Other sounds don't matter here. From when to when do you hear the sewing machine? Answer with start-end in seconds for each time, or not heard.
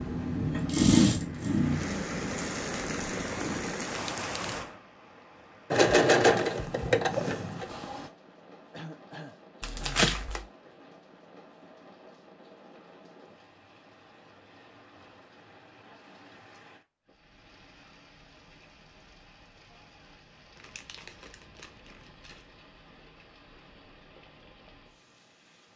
0.0-3.7, 5.7-8.1.